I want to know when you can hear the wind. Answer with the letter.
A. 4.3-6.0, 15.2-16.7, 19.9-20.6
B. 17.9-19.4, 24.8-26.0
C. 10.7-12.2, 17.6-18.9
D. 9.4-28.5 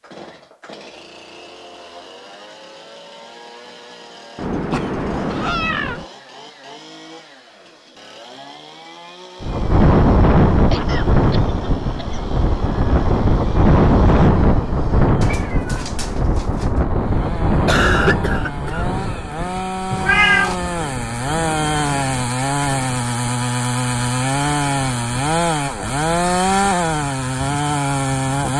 D.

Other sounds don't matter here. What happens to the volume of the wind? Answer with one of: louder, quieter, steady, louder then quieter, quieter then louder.
quieter.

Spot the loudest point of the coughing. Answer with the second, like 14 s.
18 s.